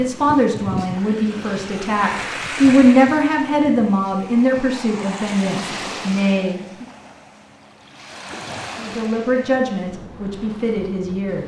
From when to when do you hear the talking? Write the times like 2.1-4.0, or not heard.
0.0-6.8, 8.8-11.4.